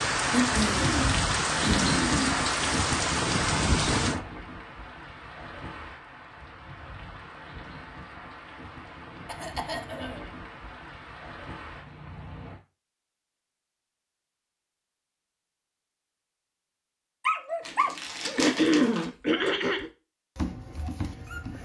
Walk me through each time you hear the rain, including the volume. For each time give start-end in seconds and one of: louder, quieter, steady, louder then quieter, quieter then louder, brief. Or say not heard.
0.0-12.6 quieter.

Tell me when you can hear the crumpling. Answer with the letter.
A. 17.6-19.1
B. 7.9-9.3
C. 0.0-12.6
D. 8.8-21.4
A.